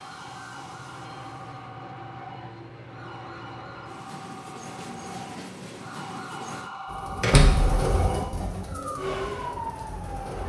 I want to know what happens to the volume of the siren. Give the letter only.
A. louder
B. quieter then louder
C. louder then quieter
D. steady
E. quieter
A.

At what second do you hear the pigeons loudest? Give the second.
8 s.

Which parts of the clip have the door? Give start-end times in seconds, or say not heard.
7.2-7.8.